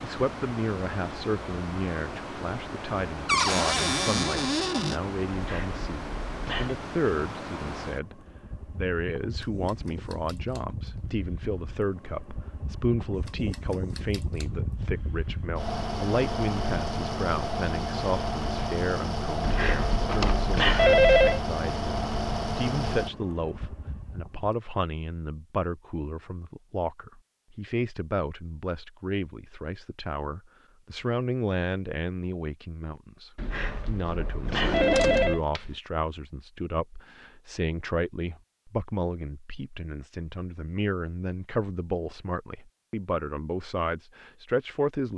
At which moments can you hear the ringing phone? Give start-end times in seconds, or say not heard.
5.3-6.8, 19.4-21.4, 33.4-35.4.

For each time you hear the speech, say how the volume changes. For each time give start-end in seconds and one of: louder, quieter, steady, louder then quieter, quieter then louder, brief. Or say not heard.
0.0-45.1 steady.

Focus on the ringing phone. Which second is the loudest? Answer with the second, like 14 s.
21 s.